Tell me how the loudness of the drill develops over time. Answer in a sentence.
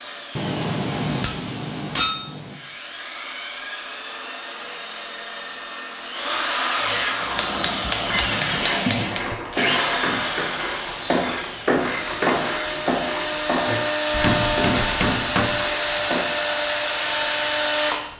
The loudness of the drill goes up.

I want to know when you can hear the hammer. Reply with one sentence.
You can hear the hammer from 0.3 to 2.6 s, from 7.3 to 9.3 s and from 14.1 to 15.7 s.